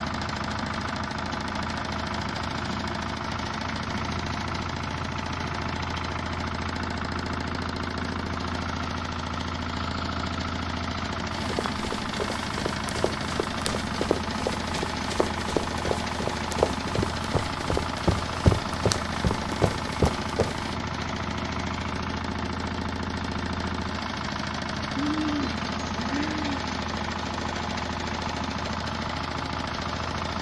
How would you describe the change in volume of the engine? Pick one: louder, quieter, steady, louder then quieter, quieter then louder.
steady.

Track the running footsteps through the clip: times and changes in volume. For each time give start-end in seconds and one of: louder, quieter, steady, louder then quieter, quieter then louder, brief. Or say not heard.
11.3-20.8 louder.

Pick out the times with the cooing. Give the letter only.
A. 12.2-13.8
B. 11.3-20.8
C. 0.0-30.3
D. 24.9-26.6
D.